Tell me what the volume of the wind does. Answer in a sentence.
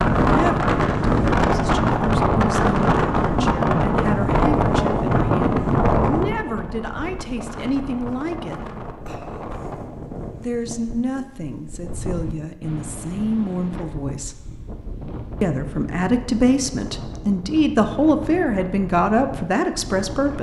The volume of the wind goes down.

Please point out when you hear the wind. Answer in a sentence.
The wind can be heard from 0.0 to 20.3 s.